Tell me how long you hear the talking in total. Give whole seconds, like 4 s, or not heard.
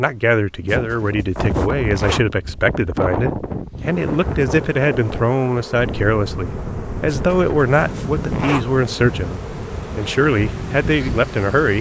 12 s.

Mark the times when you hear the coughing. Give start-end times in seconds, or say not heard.
not heard.